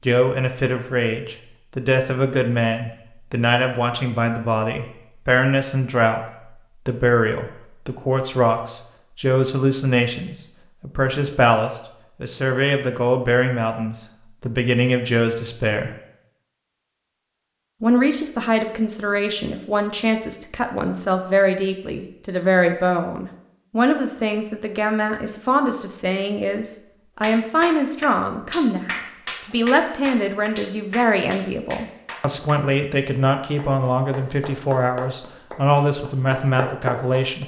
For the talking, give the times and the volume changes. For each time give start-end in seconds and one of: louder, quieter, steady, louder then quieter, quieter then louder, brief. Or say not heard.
0.0-15.9 steady
17.8-37.4 steady.